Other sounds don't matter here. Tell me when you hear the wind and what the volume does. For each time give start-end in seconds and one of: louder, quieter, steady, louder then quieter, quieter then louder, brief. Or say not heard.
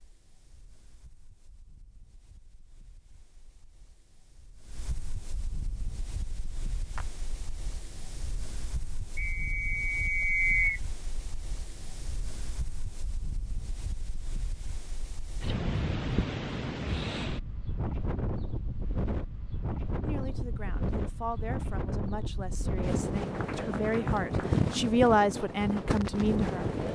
0.0-26.9 louder.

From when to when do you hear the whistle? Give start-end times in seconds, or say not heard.
9.2-10.8.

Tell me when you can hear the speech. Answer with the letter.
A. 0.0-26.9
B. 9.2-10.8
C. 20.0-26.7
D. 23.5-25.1
C.